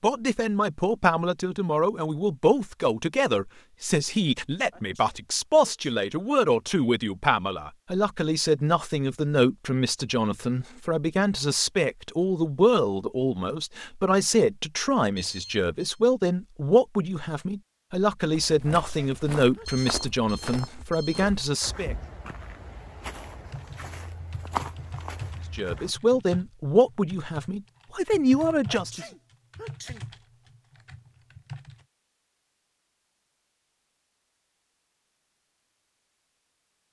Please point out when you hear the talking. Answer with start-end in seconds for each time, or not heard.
0.0-21.9, 25.6-29.1.